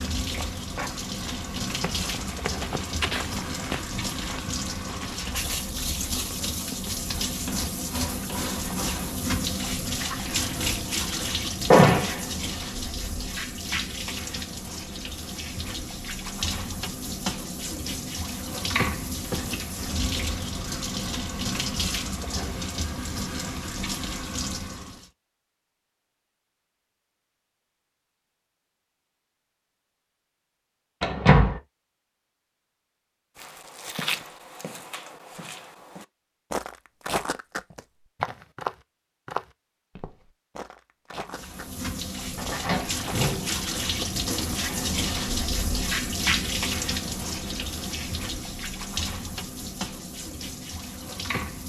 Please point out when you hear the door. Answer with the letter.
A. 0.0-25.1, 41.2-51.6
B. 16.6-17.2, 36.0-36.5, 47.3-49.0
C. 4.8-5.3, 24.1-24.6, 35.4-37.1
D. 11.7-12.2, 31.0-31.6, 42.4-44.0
D.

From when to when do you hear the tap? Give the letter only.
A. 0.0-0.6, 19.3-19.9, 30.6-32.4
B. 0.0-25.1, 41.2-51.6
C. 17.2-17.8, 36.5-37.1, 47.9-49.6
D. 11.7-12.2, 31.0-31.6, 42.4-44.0
B.